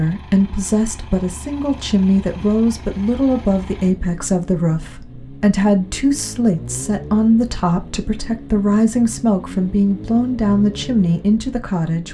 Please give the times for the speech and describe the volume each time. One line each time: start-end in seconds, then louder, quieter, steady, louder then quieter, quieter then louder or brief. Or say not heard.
0.0-12.0 steady.